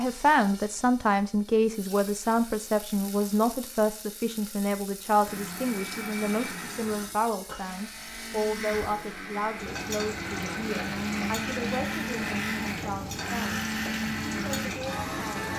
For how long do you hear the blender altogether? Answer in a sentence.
You can hear the blender for 10 seconds altogether.